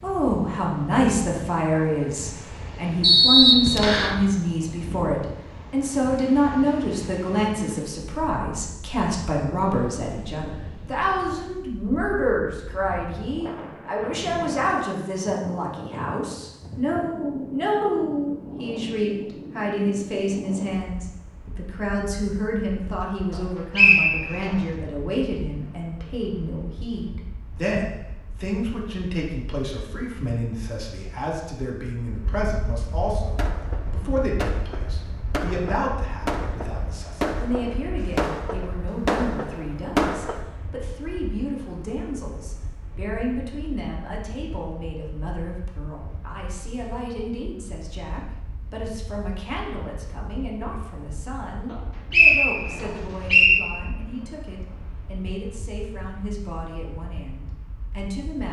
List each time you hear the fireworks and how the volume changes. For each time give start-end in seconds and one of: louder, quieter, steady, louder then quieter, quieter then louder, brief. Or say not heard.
33.1-40.5 louder.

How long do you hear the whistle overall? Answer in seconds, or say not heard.
4 s.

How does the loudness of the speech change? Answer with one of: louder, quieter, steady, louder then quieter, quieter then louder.
quieter.